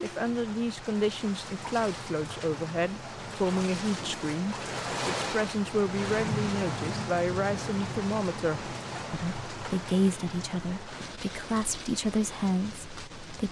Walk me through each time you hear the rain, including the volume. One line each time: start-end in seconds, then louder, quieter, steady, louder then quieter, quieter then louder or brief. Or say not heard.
0.0-13.4 louder then quieter.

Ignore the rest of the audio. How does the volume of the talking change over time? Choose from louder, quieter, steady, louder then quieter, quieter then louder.
steady.